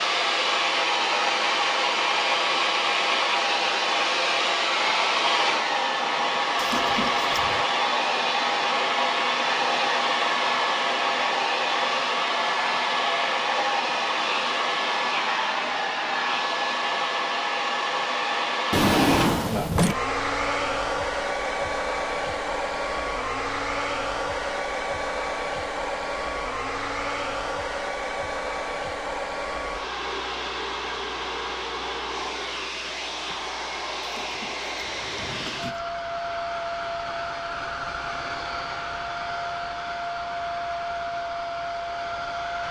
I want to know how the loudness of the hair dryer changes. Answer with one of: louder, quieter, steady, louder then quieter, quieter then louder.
quieter.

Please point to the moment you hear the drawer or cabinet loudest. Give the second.
19 s.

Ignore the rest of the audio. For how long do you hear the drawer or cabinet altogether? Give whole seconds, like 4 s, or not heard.
4 s.